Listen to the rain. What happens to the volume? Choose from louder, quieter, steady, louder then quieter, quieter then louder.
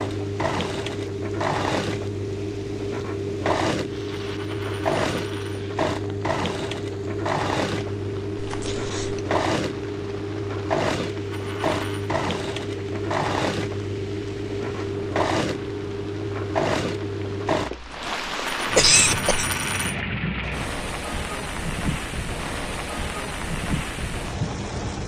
louder.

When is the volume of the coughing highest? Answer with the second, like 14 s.
19 s.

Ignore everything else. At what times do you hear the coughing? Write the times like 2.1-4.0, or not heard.
8.3-9.2, 17.8-19.5.